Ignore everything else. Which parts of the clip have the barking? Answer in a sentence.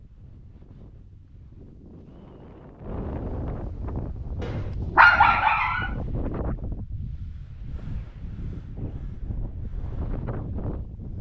The barking can be heard from 4.4 to 5.9 s.